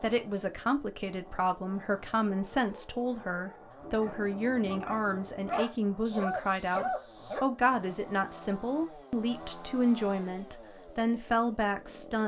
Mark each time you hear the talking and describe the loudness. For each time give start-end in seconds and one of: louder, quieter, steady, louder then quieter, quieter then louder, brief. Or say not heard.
0.0-12.2 steady.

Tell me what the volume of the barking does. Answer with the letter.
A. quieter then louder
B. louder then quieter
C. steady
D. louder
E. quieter
D.